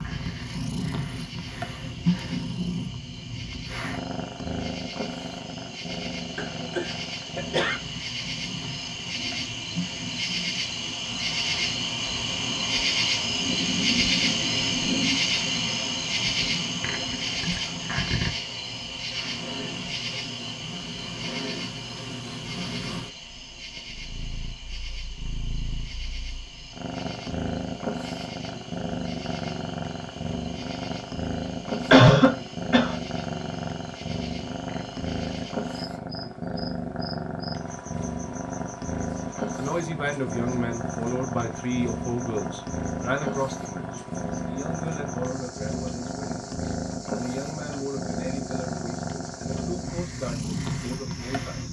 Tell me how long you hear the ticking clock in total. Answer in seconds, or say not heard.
not heard.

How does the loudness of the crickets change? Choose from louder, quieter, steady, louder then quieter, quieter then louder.
louder then quieter.